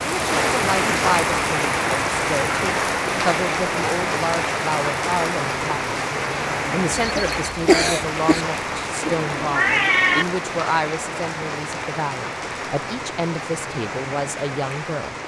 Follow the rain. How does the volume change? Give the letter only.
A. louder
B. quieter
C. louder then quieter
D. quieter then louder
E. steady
B.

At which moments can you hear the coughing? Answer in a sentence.
The coughing can be heard from 7.0 to 8.4 s.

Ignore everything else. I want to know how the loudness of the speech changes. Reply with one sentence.
The loudness of the speech stays about the same.